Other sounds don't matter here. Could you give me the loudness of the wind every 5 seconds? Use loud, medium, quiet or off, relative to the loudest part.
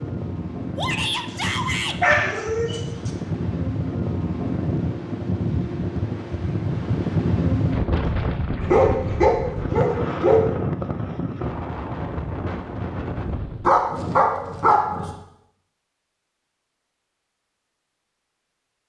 loud, loud, loud, off.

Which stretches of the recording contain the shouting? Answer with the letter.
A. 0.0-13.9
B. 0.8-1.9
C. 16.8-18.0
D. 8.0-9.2
B.